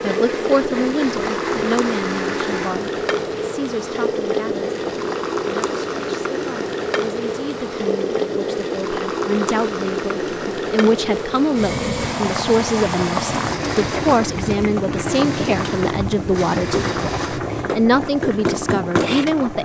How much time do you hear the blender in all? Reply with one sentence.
The blender can be heard for 10 seconds in total.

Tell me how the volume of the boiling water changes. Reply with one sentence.
The volume of the boiling water stays about the same.